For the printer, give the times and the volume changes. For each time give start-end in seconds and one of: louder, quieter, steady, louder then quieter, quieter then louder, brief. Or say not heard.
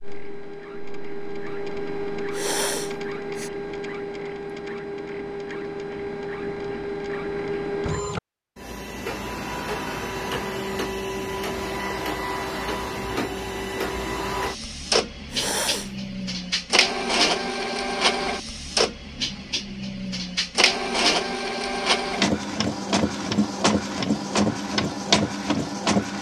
0.0-26.1 louder.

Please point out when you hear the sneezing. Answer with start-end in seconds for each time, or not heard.
2.3-3.5, 15.3-15.9.